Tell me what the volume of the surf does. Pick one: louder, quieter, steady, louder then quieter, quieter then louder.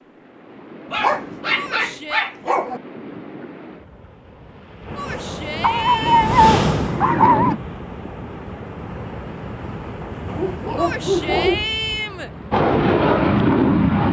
louder then quieter.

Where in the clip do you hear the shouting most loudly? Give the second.
12 s.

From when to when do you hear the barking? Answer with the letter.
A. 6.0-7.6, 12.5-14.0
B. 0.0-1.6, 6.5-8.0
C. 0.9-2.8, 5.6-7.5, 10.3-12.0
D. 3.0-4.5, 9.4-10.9
C.